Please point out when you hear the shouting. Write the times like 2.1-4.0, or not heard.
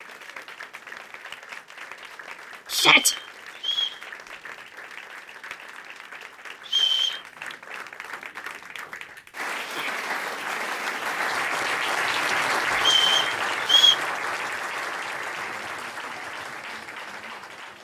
2.7-3.1, 9.6-10.1.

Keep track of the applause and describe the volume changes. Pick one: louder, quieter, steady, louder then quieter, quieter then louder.
louder then quieter.